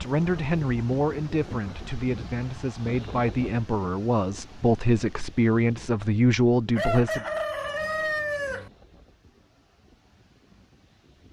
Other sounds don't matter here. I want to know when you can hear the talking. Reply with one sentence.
The talking can be heard from 0.0 to 7.2 s.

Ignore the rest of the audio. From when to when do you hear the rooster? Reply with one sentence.
You can hear the rooster from 6.8 to 8.7 s.